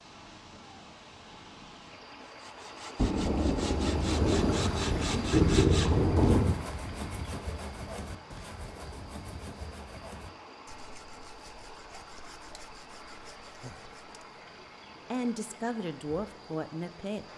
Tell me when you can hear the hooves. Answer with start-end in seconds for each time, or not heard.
not heard.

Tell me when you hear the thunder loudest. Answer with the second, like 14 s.
6 s.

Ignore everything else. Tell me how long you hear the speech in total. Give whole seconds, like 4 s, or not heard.
2 s.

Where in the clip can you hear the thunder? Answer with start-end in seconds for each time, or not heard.
3.0-6.5.